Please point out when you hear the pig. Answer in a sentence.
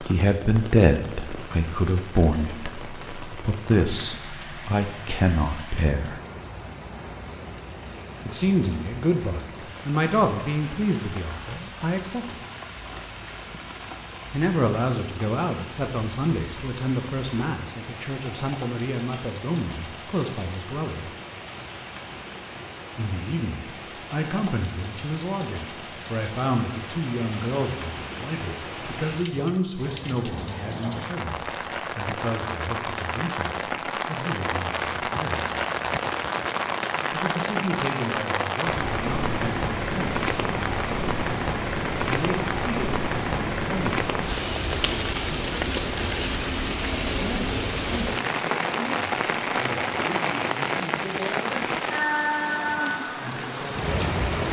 You can't hear the pig here.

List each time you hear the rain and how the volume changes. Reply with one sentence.
You can hear the rain from 0.0 to 54.4 s, getting louder.